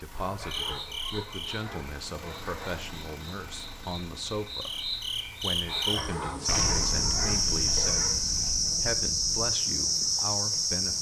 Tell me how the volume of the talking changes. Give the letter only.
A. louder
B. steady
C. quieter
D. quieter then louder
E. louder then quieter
B.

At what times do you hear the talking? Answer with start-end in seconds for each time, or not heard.
0.0-10.9.